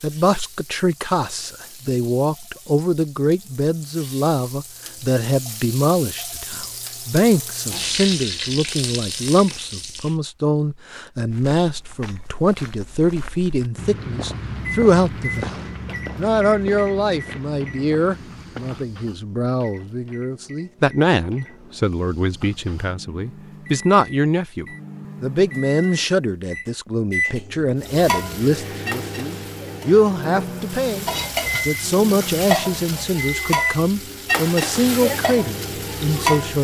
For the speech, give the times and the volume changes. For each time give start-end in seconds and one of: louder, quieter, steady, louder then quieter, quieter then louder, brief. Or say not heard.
0.0-36.5 steady.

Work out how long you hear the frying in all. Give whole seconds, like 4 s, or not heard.
19 s.